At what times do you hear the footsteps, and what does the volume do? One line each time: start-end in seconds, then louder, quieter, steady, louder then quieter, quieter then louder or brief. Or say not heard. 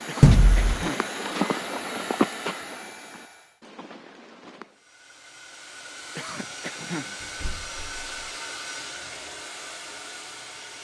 0.0-4.8 louder then quieter.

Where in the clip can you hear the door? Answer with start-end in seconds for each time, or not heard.
0.2-0.8, 7.2-8.2.